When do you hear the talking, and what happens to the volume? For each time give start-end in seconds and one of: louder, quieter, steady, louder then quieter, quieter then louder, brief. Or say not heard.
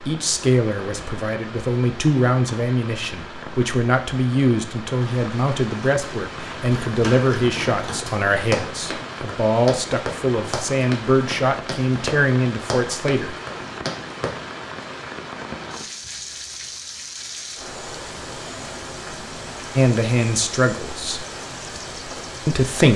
0.1-13.3 steady
19.8-21.2 brief
22.4-22.9 brief.